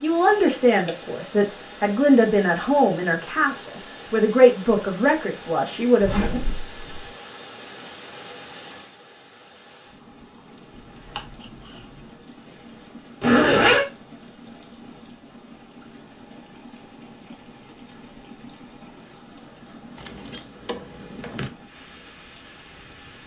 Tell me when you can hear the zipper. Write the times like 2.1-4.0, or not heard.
6.0-7.0, 13.2-13.8.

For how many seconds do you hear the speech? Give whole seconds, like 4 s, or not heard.
6 s.